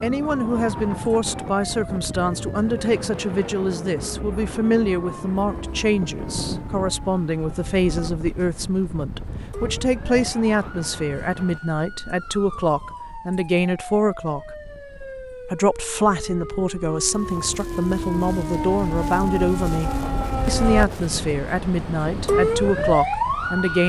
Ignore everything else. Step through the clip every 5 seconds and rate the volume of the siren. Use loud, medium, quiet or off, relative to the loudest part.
quiet, quiet, quiet, medium, loud.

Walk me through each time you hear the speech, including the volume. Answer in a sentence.
The speech can be heard from 0.0 to 14.4 s, at a steady volume; and from 15.5 to 23.8 s, at a steady volume.